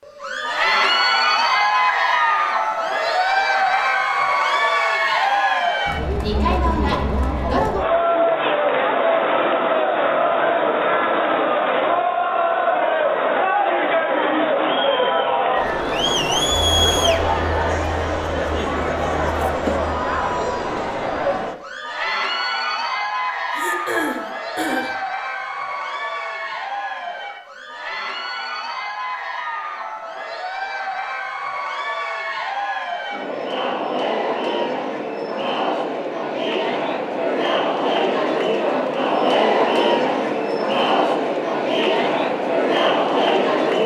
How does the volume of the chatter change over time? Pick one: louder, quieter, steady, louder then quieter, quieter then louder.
quieter then louder.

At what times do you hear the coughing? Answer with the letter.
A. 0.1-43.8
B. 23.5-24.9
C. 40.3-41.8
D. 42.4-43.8
B.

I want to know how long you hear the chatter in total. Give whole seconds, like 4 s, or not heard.
44 s.